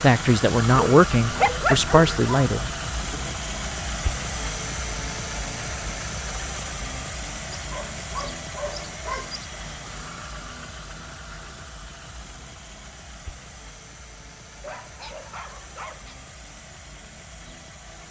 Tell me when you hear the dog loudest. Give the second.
2 s.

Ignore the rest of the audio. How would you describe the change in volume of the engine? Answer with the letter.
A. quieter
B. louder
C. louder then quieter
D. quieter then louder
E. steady
A.